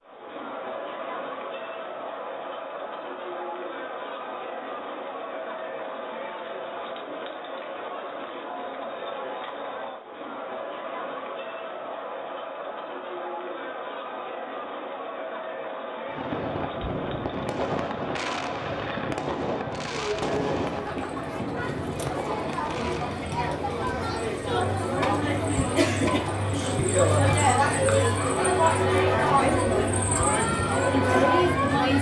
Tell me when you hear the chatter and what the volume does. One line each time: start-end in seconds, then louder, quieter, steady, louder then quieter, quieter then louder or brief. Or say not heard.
0.0-31.9 louder.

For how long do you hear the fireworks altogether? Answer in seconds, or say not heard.
7 s.